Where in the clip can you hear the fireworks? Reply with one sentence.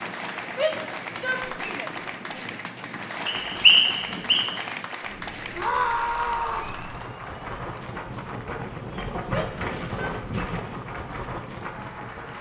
The fireworks can't be heard in this clip.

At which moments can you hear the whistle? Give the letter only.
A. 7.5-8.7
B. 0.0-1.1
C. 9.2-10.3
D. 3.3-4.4
D.